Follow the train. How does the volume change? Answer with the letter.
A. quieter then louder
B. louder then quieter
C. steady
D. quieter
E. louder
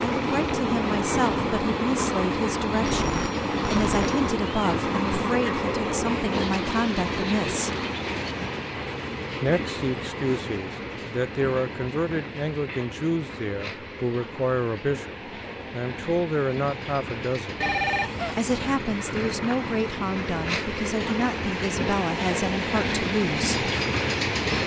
A.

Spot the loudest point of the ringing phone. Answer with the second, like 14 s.
18 s.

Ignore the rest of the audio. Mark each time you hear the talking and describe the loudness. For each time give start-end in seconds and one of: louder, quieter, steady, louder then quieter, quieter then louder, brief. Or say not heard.
0.0-7.8 steady
9.4-17.6 steady
18.4-23.7 steady.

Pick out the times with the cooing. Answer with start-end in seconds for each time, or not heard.
6.3-8.3.